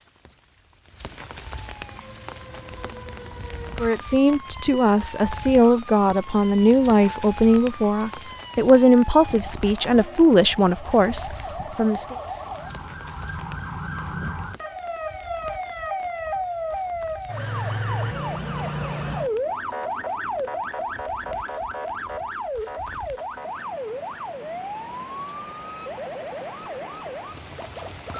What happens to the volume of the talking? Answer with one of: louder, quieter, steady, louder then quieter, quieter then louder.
steady.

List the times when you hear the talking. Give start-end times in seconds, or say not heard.
3.8-12.2.